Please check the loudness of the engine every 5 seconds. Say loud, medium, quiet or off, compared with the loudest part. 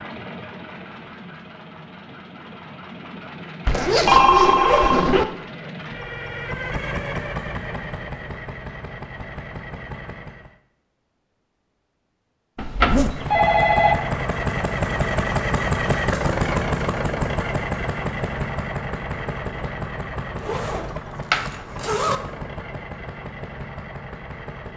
quiet, medium, loud, loud, medium.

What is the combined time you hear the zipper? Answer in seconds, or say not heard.
4 s.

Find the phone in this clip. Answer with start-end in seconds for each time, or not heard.
4.0-5.1, 12.6-13.9.